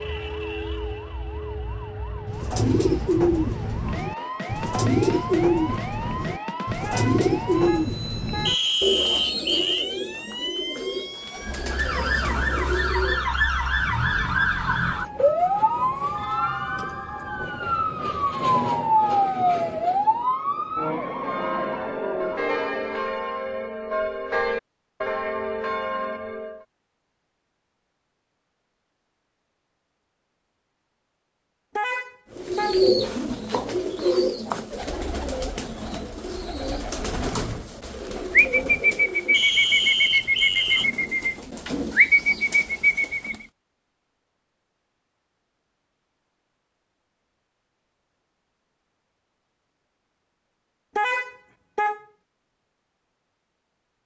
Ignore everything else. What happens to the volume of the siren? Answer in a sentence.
The loudness of the siren goes up.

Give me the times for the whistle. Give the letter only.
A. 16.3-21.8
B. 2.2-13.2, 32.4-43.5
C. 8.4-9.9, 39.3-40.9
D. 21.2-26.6
C.